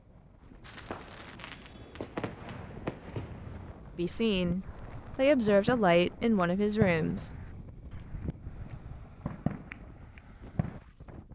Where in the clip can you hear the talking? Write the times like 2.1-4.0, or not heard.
4.0-7.5.